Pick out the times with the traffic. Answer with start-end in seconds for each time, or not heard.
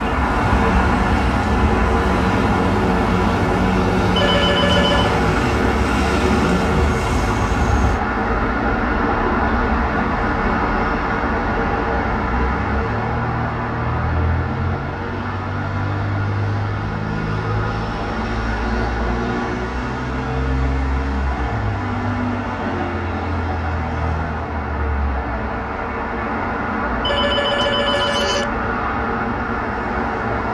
0.0-30.4.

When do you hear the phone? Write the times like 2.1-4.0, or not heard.
4.2-5.2, 27.1-28.4.